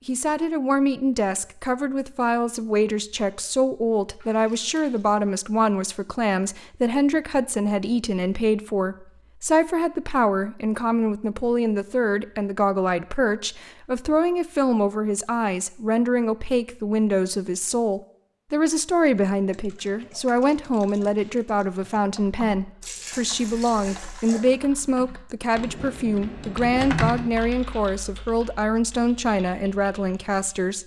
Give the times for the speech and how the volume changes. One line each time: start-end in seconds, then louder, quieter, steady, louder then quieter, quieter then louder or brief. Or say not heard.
0.1-30.8 steady.